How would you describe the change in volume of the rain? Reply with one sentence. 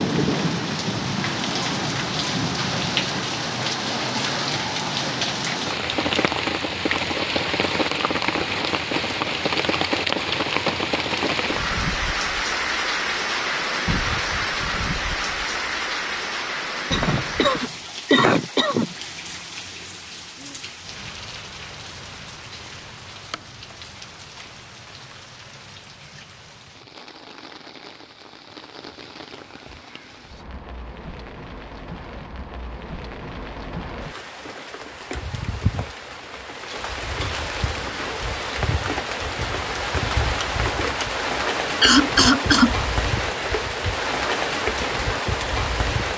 The loudness of the rain goes down, then up.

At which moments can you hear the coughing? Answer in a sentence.
The coughing can be heard from 16.9 to 18.9 s and from 41.8 to 42.8 s.